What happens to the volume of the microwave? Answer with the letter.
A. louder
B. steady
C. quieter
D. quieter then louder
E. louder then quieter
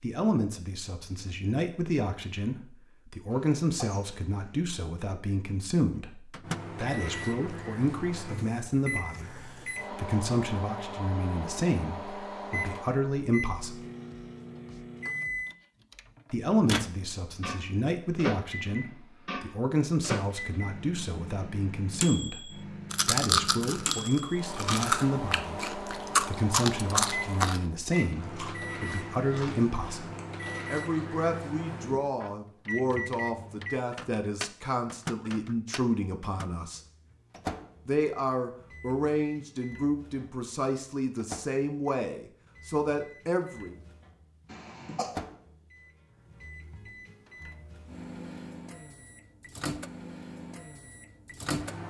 C.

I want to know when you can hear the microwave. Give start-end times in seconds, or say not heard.
6.0-51.8.